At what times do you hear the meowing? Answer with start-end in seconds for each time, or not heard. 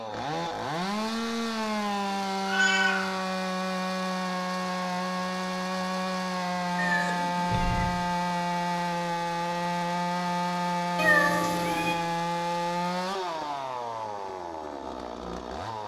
2.5-3.1, 6.8-8.0, 10.9-11.9.